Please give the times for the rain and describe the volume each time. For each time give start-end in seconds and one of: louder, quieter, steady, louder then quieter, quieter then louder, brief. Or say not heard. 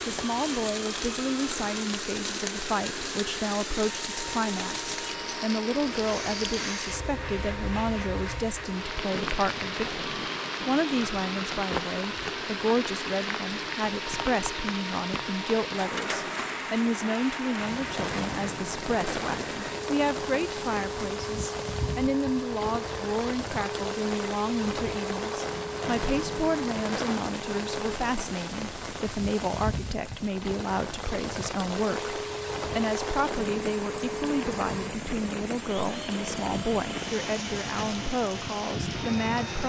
0.0-39.6 steady.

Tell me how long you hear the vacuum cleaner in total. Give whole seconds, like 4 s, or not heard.
36 s.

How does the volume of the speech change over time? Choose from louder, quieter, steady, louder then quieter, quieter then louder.
steady.